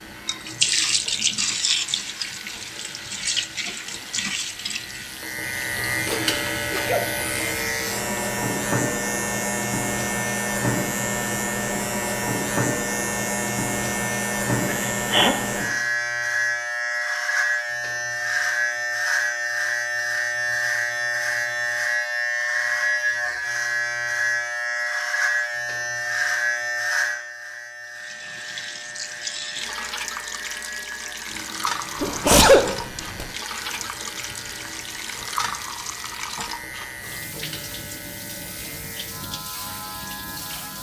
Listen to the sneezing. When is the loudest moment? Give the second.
32 s.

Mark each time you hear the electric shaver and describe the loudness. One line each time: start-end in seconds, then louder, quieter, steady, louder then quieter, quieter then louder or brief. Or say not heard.
0.0-40.7 louder then quieter.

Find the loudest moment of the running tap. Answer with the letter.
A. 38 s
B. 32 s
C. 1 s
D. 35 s
C.